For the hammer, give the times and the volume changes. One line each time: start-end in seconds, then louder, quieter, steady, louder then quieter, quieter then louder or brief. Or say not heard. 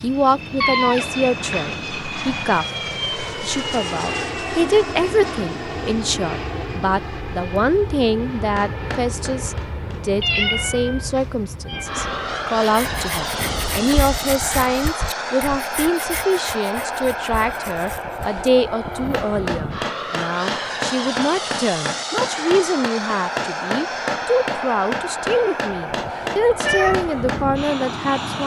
8.3-10.1 brief
19.1-27.5 steady.